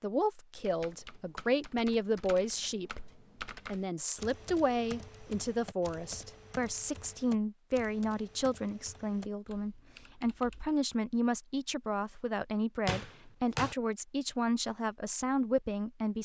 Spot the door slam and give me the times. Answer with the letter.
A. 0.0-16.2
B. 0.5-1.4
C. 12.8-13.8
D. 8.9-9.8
C.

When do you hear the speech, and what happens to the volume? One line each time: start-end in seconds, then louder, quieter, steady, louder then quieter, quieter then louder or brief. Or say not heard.
0.0-16.2 steady.